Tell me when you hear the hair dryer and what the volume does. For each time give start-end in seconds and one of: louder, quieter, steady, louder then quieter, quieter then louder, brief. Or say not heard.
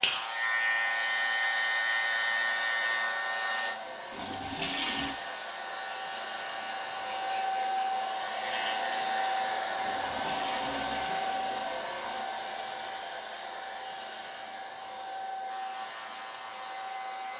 0.0-17.3 louder then quieter.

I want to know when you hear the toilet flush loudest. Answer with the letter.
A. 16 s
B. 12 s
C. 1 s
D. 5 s
D.